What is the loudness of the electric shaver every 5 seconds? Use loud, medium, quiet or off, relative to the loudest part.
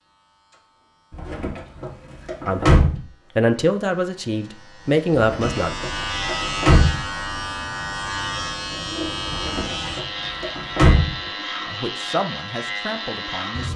quiet, loud, loud.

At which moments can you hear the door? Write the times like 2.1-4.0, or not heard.
1.1-3.0, 5.1-7.0, 9.2-11.2.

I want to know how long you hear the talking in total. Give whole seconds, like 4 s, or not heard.
6 s.